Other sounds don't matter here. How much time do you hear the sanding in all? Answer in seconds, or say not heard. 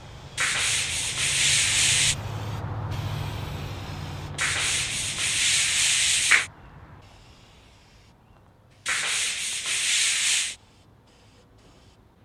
6 s.